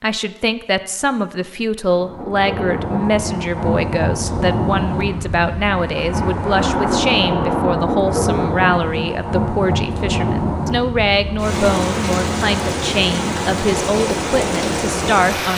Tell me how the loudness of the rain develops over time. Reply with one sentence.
The volume of the rain stays about the same.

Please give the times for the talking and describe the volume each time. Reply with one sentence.
You can hear the talking from 0.0 to 15.5 s, at a steady volume.